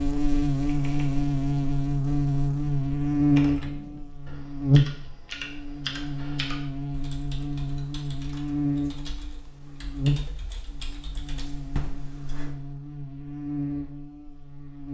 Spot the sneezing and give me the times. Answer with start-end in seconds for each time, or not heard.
not heard.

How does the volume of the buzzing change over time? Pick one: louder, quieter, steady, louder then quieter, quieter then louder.
quieter.